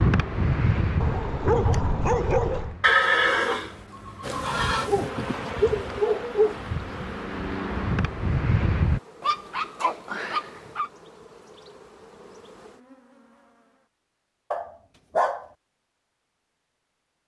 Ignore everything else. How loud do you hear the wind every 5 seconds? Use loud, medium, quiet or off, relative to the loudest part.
loud, loud, off, off.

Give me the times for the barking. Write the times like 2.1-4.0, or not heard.
1.0-2.8, 4.8-6.6, 9.2-10.9, 14.5-15.4.